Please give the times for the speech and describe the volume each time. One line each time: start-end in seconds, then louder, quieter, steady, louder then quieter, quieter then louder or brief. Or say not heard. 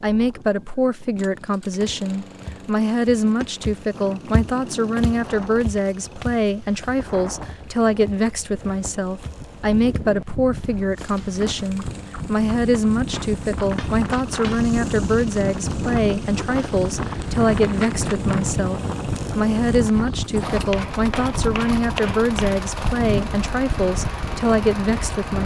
0.0-25.4 steady.